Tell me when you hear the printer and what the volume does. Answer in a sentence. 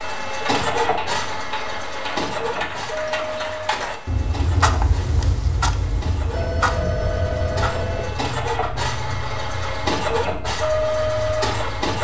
The printer can be heard from 0.0 to 11.9 s, getting quieter then louder.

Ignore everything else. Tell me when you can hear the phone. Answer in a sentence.
The phone can be heard from 6.3 to 8.2 s.